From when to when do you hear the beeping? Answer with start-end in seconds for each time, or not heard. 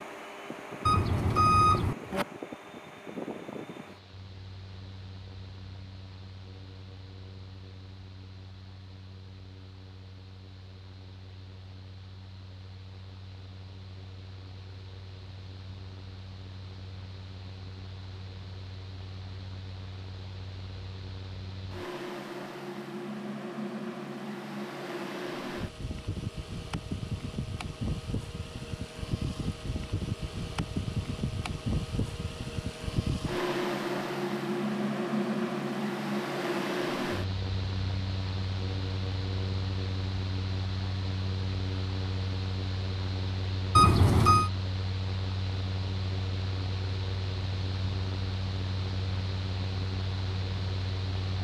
0.8-2.2, 43.8-44.5.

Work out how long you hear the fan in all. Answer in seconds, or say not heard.
51 s.